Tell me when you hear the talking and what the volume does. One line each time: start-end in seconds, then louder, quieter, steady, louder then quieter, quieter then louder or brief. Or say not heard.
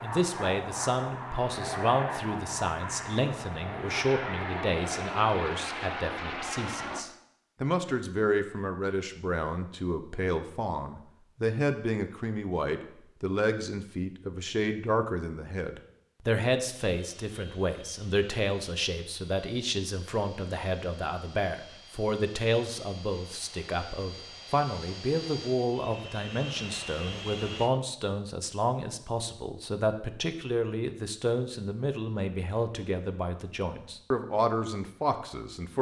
0.0-35.7 steady.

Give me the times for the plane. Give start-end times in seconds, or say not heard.
0.0-7.0, 16.9-27.7.